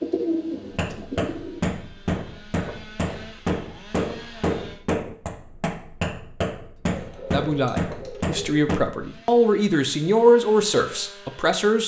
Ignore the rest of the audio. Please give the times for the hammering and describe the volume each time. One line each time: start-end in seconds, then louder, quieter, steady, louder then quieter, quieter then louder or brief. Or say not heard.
0.7-8.8 steady.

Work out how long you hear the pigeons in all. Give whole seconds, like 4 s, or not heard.
3 s.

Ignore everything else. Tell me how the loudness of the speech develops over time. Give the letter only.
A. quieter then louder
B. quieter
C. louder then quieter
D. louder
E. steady
C.